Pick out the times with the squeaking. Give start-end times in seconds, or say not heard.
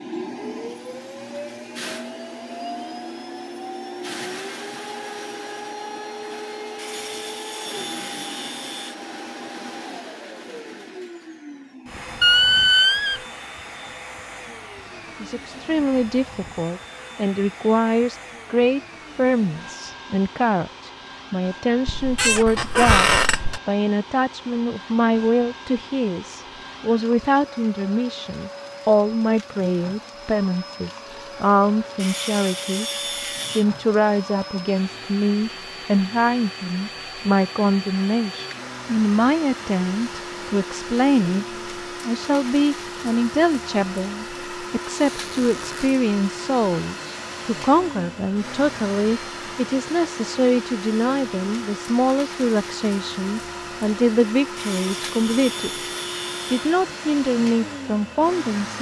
12.2-13.2, 21.9-23.6, 45.0-45.9.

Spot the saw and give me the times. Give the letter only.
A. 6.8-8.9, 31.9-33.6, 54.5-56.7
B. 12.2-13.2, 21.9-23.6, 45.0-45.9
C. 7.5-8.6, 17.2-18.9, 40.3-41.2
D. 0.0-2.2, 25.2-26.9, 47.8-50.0
A.